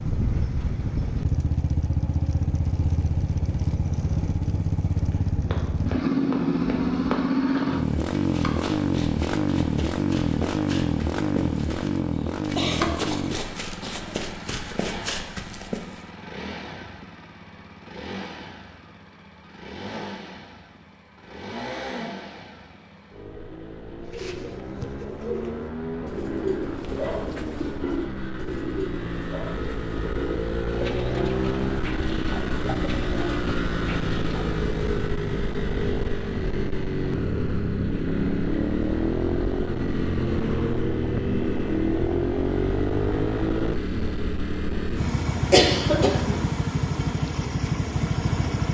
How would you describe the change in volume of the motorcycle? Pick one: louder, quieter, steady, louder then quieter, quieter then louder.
quieter then louder.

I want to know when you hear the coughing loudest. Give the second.
46 s.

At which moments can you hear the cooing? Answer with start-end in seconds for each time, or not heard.
24.0-34.5.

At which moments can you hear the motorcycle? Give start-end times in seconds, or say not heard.
0.0-48.7.